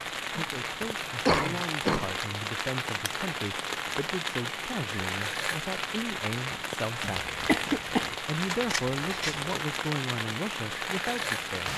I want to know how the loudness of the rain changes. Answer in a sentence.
The loudness of the rain stays about the same.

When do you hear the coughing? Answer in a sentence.
The coughing can be heard from 0.3 to 2.1 s and from 7.0 to 8.2 s.